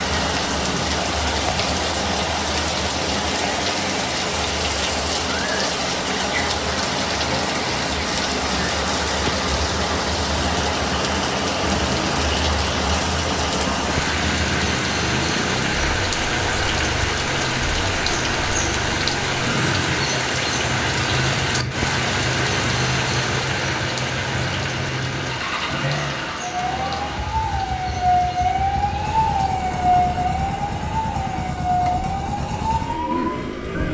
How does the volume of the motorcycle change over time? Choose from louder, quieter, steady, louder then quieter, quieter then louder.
louder.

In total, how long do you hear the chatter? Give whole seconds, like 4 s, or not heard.
not heard.